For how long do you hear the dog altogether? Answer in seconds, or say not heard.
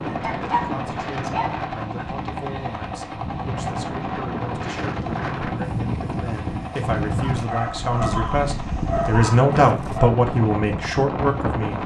5 s.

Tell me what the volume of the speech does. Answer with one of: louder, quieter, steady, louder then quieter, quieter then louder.
louder.